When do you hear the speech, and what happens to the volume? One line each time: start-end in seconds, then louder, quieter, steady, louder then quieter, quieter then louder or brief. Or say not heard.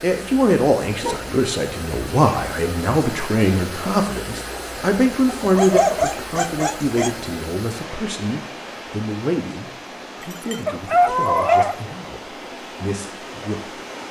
0.0-13.8 quieter.